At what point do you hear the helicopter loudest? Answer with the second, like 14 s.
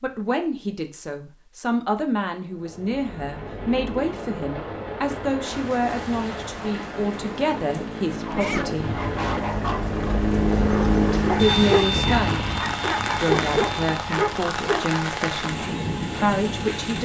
11 s.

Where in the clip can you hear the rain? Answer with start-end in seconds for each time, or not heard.
5.4-17.0.